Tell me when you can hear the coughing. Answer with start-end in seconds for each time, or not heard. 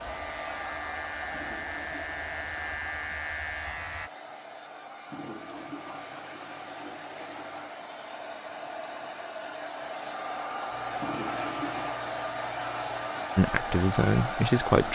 not heard.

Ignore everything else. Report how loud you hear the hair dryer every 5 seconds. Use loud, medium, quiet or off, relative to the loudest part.
medium, medium, loud.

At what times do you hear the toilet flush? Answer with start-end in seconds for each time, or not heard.
1.3-2.9, 5.1-7.7, 11.0-12.1.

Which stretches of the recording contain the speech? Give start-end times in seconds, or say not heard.
13.3-14.9.